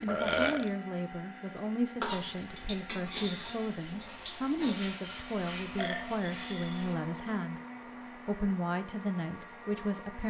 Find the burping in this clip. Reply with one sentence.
The burping can be heard from 0.1 to 0.7 s and from 5.8 to 6.9 s.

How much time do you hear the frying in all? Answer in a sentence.
The frying can be heard for 5 seconds in total.